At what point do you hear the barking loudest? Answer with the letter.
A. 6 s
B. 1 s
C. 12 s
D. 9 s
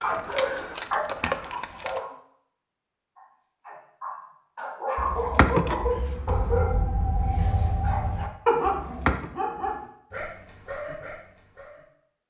D.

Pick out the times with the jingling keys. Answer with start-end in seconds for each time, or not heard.
0.0-2.0, 5.0-6.6, 8.7-9.3.